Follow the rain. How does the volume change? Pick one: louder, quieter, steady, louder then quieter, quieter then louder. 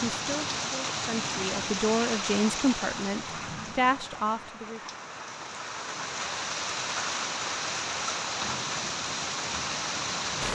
quieter then louder.